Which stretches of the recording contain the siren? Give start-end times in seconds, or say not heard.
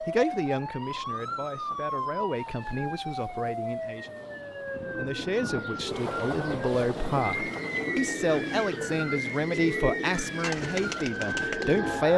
0.0-12.1.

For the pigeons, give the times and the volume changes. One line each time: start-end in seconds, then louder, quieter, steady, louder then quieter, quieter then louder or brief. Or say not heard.
5.1-12.1 louder.